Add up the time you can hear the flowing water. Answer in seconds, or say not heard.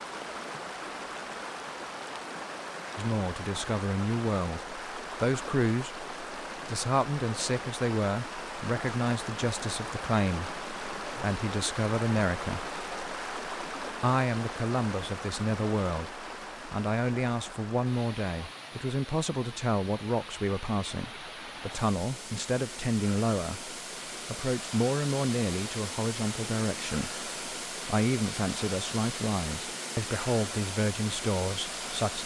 32 s.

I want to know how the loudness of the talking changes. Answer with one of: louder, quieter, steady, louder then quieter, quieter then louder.
steady.